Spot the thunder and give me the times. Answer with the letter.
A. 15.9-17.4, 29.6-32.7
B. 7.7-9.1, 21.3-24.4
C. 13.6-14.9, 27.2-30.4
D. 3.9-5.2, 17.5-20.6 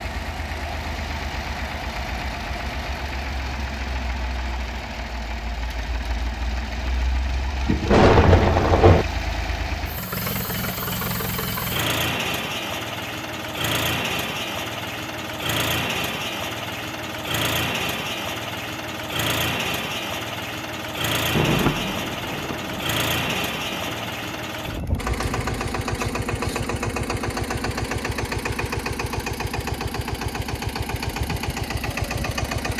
B.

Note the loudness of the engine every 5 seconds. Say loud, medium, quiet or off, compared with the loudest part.
medium, medium, loud, loud, loud, loud, loud.